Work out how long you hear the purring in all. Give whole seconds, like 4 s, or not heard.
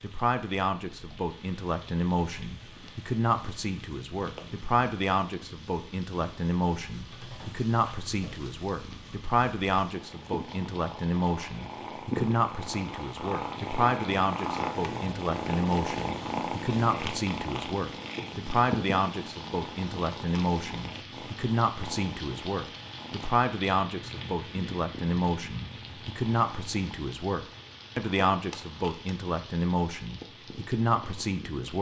32 s.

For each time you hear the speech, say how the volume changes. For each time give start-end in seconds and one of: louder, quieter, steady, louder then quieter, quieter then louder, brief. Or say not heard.
0.0-31.7 steady.